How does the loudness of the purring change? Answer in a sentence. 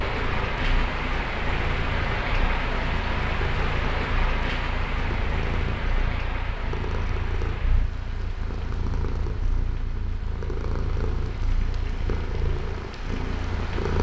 The volume of the purring stays about the same.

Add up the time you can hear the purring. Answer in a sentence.
You can hear the purring for 14 seconds altogether.